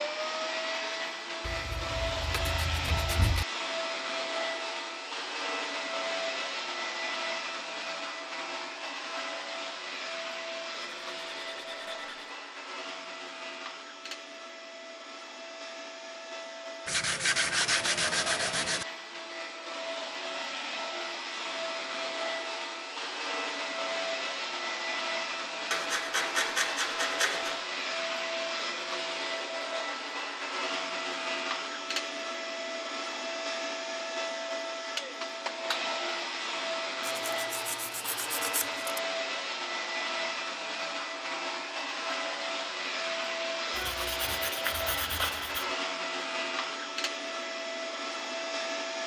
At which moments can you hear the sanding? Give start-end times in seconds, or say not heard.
1.4-3.5, 10.8-12.3, 16.9-18.9, 25.7-27.6, 37.0-39.0, 43.7-45.6.